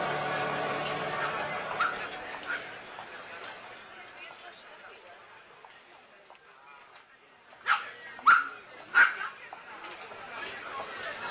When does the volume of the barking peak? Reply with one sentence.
The loudest moment of the barking is at 8 seconds.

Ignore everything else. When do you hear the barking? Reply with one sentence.
You can hear the barking from 1.1 to 2.6 s and from 7.7 to 9.2 s.